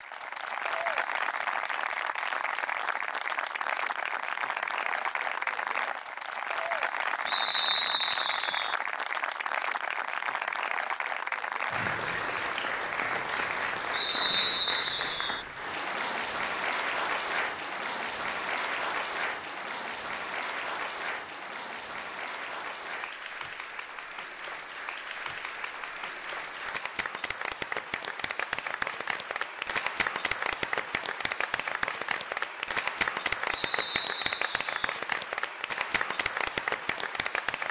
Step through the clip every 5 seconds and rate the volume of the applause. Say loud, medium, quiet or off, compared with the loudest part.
loud, loud, loud, loud, medium, loud, loud, loud.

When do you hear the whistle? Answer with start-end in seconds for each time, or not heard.
7.2-8.8, 13.9-15.4, 33.5-34.8.